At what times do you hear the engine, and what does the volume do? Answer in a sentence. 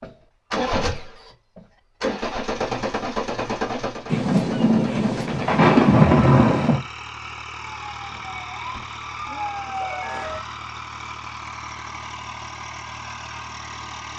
You can hear the engine from 0.0 to 14.1 s, getting quieter.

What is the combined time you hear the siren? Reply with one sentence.
The siren can be heard for 3 seconds in total.